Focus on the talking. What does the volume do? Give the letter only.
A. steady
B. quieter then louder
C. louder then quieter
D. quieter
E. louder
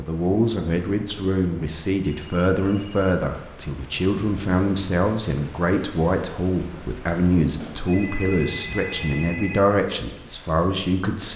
A.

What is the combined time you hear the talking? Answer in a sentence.
You can hear the talking for 11 seconds altogether.